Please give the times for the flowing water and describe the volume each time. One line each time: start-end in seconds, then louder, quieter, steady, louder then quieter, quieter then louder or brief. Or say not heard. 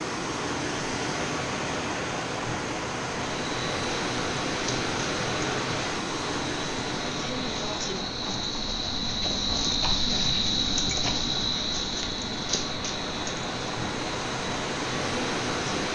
0.0-15.8 quieter then louder.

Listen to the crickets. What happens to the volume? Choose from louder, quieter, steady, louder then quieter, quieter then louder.
louder then quieter.